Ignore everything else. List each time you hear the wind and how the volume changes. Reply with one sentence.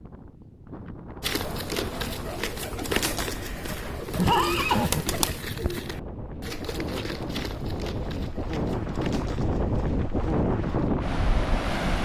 You can hear the wind from 0.0 to 11.9 s, getting louder.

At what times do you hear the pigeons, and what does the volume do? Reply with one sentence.
The pigeons can be heard from 1.2 to 10.9 s, getting quieter.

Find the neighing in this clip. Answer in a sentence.
The neighing can be heard from 4.1 to 5.4 s.